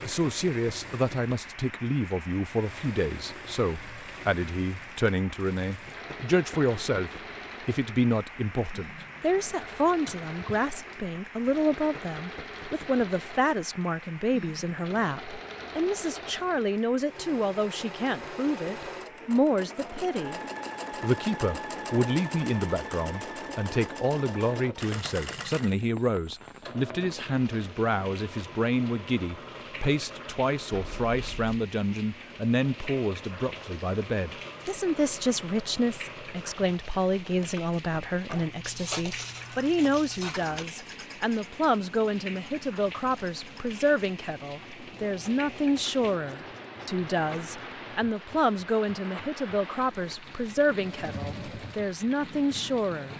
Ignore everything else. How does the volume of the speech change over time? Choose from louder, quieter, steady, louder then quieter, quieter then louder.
steady.